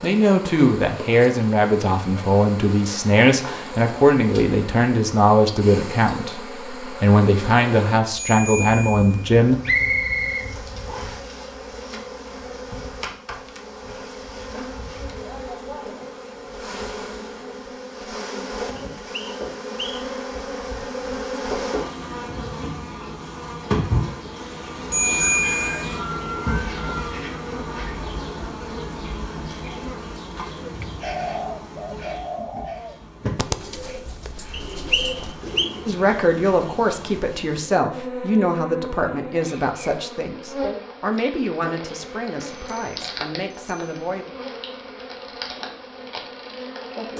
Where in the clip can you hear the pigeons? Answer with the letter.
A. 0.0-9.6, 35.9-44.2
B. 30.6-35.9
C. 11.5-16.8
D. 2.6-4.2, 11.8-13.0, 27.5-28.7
B.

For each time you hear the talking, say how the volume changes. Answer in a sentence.
The talking can be heard from 0.0 to 9.6 s, at a steady volume; and from 35.9 to 44.2 s, getting quieter.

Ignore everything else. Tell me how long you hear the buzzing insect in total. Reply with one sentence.
The buzzing insect can be heard for 47 seconds in total.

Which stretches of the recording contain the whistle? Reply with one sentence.
The whistle can be heard from 9.7 to 11.2 s, from 18.8 to 20.0 s and from 34.5 to 35.7 s.